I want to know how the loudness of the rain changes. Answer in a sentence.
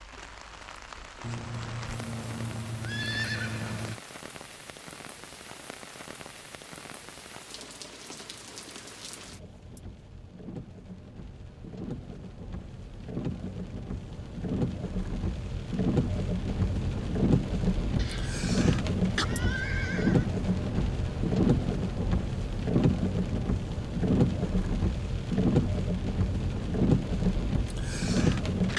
The volume of the rain goes up.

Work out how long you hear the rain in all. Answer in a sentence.
You can hear the rain for 29 seconds altogether.